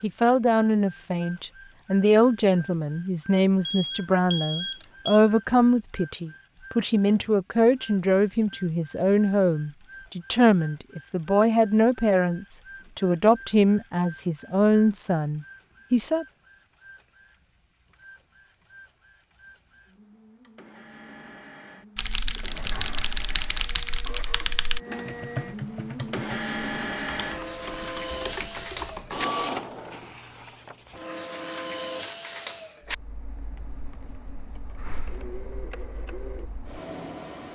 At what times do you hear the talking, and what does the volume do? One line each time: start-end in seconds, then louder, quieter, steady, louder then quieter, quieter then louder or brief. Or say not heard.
0.0-16.2 steady.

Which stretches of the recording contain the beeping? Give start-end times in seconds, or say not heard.
3.6-5.2.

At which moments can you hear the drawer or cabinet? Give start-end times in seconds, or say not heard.
22.4-23.1.